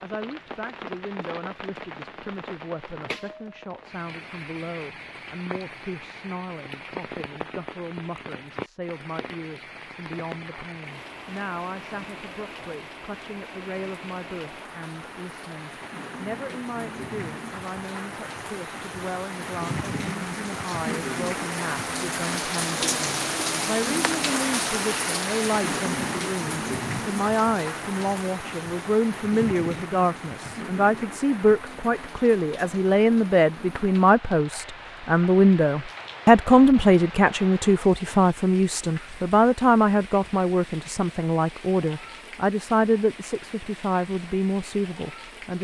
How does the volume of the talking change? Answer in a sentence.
The loudness of the talking goes up.